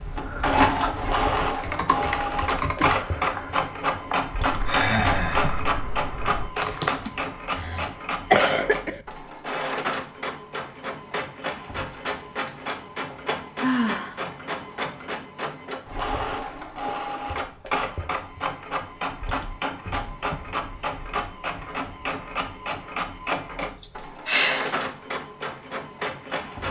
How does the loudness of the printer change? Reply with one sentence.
The loudness of the printer goes down.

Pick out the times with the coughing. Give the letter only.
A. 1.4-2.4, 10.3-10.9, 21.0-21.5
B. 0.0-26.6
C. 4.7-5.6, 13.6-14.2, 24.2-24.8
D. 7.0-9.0
D.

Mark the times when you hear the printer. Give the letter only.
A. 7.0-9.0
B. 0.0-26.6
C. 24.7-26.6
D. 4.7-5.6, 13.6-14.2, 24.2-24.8
B.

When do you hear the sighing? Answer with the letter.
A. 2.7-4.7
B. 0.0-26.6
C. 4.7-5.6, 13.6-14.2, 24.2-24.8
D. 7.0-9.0
C.